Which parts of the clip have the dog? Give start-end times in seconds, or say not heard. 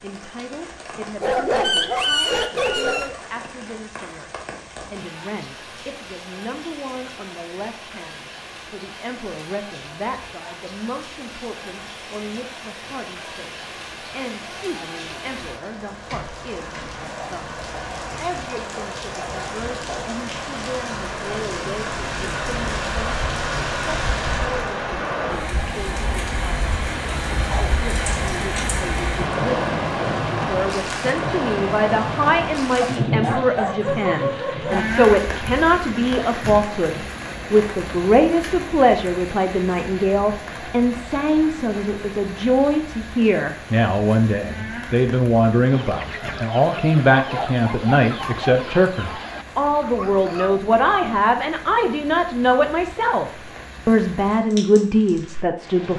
1.2-3.1, 32.8-34.8, 47.0-48.6.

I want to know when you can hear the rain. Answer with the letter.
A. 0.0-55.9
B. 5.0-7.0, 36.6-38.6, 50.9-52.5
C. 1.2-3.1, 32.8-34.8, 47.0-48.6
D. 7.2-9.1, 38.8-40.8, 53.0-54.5
A.